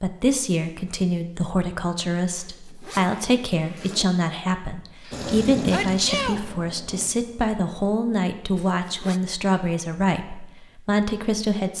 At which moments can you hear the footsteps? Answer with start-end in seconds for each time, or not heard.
not heard.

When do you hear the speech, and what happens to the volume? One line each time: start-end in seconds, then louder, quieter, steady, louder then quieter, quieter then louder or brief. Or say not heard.
0.0-11.7 steady.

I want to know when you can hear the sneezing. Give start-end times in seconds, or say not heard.
5.0-6.4.